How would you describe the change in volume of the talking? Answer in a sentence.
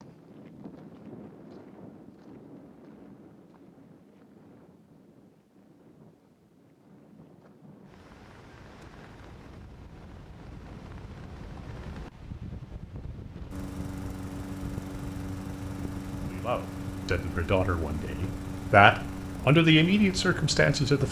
The loudness of the talking goes up, then down.